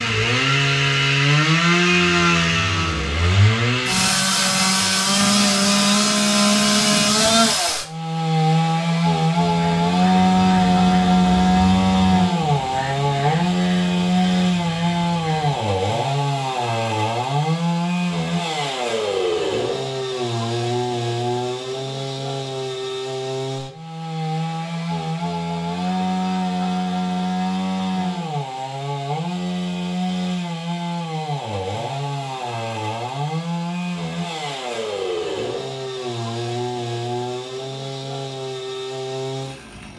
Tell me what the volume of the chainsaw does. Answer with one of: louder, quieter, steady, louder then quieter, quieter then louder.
quieter.